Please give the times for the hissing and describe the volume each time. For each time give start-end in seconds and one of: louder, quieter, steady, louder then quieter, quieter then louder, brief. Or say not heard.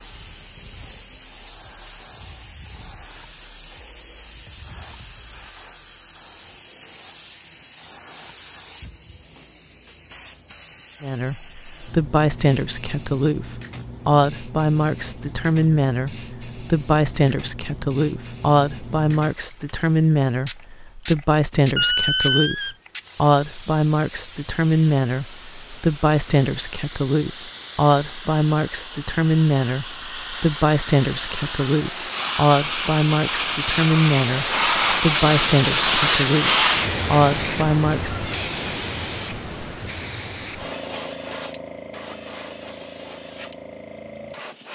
0.0-44.6 louder.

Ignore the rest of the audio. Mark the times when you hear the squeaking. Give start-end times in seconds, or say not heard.
21.8-22.8.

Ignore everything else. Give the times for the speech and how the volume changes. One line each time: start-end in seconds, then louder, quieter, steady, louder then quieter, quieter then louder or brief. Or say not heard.
11.0-38.1 steady.